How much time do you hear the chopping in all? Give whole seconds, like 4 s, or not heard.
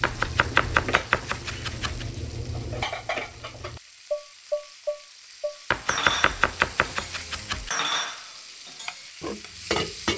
4 s.